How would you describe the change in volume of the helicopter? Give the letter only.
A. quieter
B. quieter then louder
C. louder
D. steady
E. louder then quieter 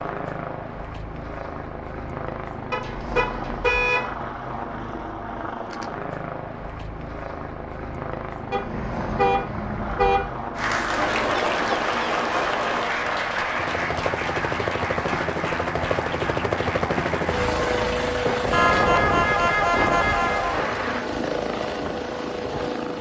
C.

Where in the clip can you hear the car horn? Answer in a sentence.
You can hear the car horn from 2.7 to 4.1 s, from 8.5 to 10.3 s and from 18.5 to 20.6 s.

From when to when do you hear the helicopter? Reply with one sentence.
You can hear the helicopter from 0.0 to 22.9 s.